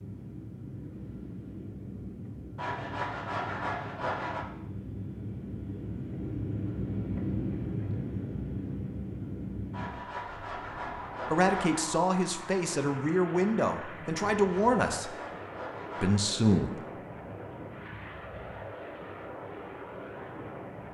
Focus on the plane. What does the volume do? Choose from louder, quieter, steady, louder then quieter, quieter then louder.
louder then quieter.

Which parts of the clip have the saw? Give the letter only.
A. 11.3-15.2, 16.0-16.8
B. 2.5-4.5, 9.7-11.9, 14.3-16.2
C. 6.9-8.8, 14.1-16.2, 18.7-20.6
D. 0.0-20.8
B.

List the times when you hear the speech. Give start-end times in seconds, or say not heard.
11.3-15.2, 16.0-16.8.